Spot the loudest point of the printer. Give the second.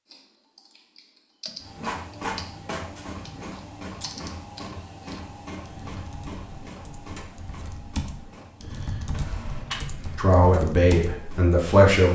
2 s.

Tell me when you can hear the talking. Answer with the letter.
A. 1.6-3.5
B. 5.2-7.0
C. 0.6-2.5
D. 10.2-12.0
D.